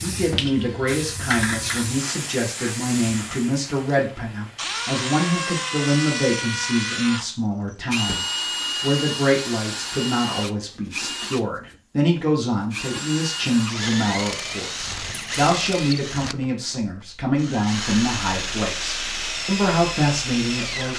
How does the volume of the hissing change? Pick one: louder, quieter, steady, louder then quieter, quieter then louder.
louder then quieter.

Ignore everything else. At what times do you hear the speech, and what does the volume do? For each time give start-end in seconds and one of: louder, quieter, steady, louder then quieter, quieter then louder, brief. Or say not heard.
0.0-20.9 steady.